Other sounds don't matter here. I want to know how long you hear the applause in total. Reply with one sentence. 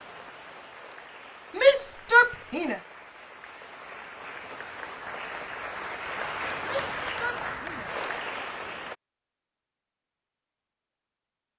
The applause can be heard for 9 seconds in total.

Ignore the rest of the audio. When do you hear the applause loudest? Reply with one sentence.
The volume of the applause peaks at 7 seconds.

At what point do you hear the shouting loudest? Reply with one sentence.
The volume of the shouting peaks at 2 seconds.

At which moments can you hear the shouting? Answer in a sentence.
The shouting can be heard from 1.6 to 2.8 s and from 6.6 to 8.0 s.